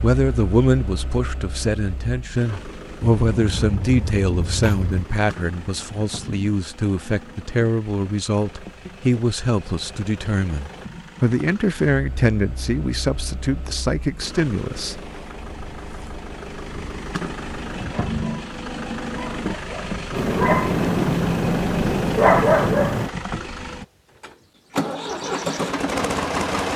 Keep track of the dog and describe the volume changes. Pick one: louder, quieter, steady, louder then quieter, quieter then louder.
louder.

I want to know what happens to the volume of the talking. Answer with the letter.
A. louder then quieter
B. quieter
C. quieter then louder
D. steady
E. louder
D.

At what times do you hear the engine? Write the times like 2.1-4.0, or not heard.
0.0-26.7.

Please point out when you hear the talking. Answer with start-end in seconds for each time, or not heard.
0.0-15.0.